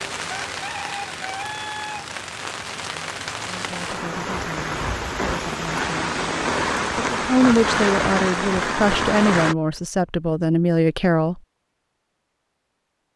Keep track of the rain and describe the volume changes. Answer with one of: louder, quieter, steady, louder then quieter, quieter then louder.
louder.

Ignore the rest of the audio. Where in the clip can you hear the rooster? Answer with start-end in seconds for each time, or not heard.
0.3-2.1.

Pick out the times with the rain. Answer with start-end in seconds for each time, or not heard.
0.0-9.6.